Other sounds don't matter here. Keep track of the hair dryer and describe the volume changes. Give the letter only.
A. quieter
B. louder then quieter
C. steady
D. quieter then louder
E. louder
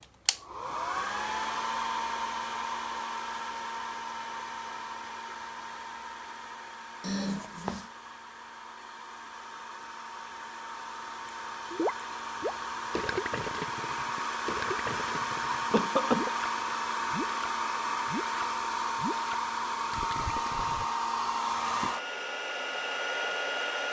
D.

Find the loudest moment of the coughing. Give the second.
16 s.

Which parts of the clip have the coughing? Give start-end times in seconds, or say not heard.
7.0-7.8, 15.7-16.3.